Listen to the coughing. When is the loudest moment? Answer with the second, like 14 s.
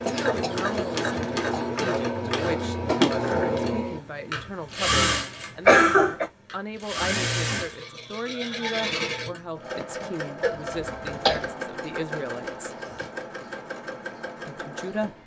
6 s.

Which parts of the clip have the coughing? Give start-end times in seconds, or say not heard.
0.1-1.7, 5.7-6.2, 10.4-11.4.